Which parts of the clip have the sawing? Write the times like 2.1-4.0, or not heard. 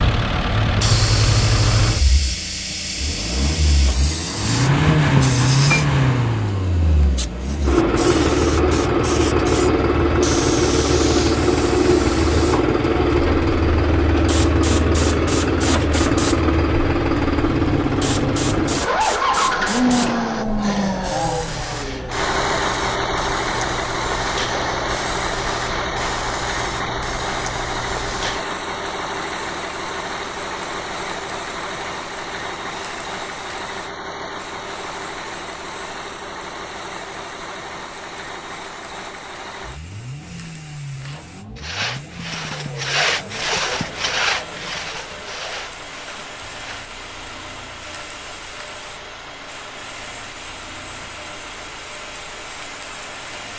41.0-47.3.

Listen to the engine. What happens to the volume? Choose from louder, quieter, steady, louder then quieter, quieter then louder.
quieter.